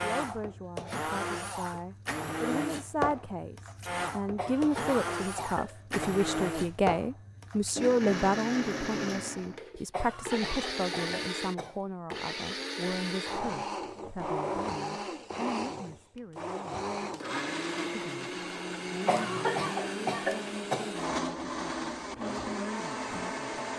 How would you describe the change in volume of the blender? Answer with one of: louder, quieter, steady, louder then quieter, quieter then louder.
steady.